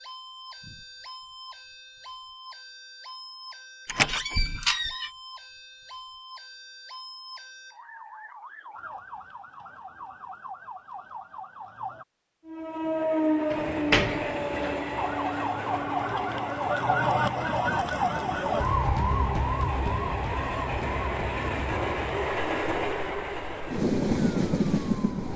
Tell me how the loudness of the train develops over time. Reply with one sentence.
The loudness of the train goes down, then up.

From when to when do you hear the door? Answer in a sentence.
The door can be heard from 3.9 to 5.1 s and from 13.5 to 14.8 s.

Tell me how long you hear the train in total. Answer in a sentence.
The train can be heard for 13 seconds in total.